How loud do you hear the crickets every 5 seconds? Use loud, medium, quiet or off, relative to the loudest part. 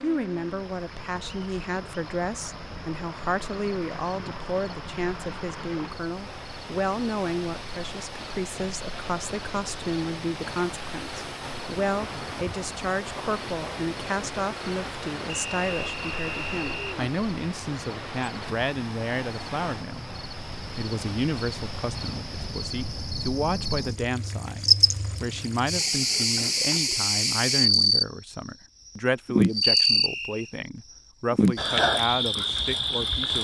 quiet, quiet, quiet, quiet, medium, loud, loud.